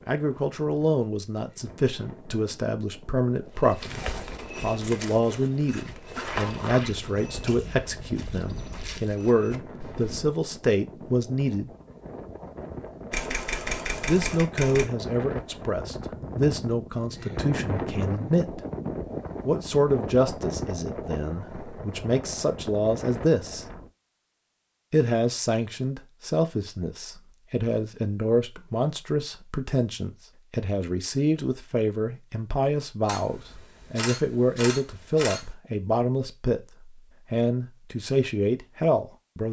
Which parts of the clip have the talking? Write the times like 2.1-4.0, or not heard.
0.1-11.7, 14.1-18.6, 19.4-23.6, 24.9-39.4.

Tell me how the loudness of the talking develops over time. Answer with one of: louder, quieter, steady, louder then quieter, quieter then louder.
steady.